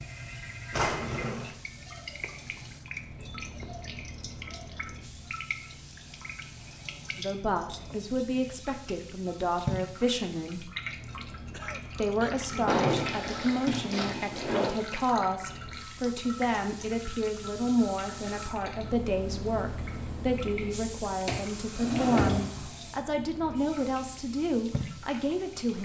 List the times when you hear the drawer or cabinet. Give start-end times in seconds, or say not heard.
0.7-1.5, 12.7-14.7, 21.2-22.7.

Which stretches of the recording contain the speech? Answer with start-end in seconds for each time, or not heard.
7.2-10.7, 11.9-25.8.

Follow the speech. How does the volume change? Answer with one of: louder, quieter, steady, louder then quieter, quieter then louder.
steady.